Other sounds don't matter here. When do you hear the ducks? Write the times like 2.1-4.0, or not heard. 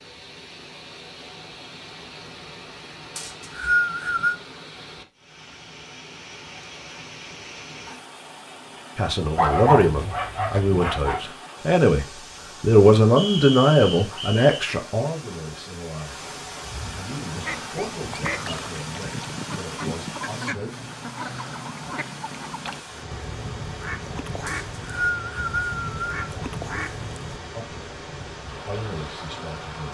17.2-27.4.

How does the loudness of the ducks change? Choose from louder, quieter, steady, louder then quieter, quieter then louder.
steady.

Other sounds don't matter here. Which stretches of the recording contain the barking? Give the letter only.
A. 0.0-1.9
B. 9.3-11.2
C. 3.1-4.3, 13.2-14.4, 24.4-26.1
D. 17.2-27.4
B.